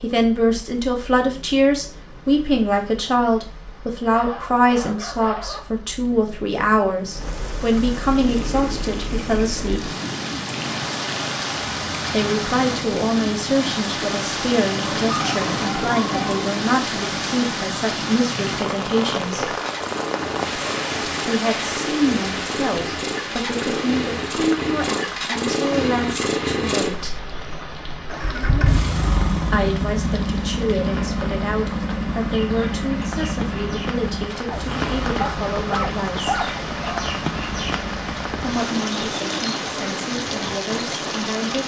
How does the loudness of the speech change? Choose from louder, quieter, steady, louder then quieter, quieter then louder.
quieter.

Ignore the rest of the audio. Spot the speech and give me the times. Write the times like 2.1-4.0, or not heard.
0.0-9.9, 12.1-19.5, 21.2-27.3, 29.5-36.4, 38.4-41.6.